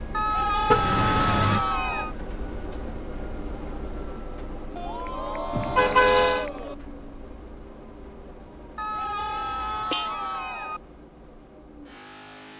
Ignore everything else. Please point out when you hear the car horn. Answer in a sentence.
You can hear the car horn from 0.7 to 1.6 s, from 5.5 to 6.5 s and from 9.1 to 10.1 s.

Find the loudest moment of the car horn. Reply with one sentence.
The volume of the car horn peaks at 6 seconds.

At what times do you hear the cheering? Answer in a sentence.
The cheering can be heard from 0.1 to 2.1 s, from 4.8 to 6.8 s and from 8.8 to 10.8 s.